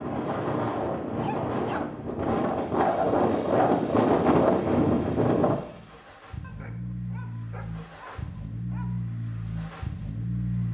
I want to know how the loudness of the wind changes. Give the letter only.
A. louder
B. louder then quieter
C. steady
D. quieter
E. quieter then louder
A.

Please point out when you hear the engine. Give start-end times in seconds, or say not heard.
2.4-10.6.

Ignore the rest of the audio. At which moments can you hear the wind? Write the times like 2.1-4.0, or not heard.
0.0-5.6.